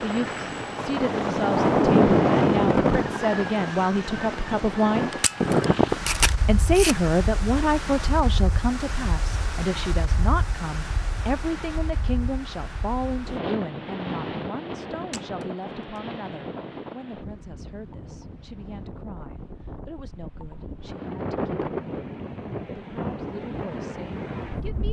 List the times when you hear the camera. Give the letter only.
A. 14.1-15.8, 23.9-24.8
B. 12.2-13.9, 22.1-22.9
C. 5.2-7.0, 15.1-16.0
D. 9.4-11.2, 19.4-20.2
C.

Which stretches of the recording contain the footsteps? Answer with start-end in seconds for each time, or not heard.
not heard.